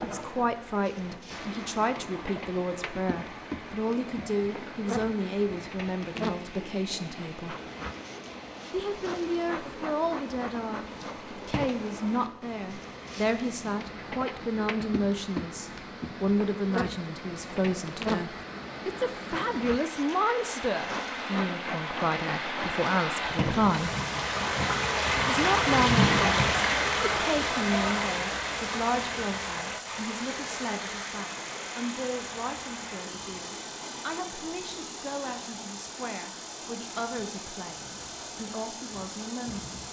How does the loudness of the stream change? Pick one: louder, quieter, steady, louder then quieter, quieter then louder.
louder then quieter.